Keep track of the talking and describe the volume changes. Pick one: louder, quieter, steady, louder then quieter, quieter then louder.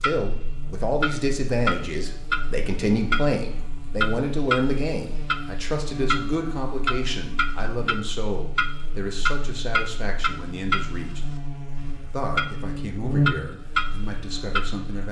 quieter.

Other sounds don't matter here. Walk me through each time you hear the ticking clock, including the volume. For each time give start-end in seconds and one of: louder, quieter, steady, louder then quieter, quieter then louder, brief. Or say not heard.
0.0-14.9 steady.